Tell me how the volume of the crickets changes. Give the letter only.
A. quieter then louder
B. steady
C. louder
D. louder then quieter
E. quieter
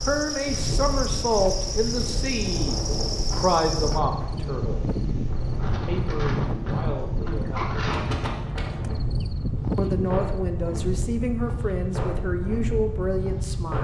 B.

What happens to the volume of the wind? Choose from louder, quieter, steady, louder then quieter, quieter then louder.
steady.